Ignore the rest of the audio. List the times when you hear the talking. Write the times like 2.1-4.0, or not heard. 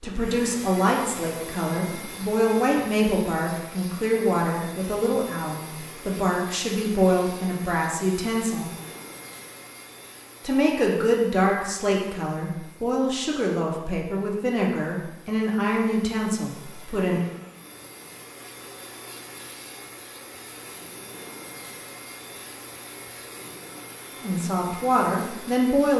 0.0-8.7, 10.4-17.2, 24.2-25.9.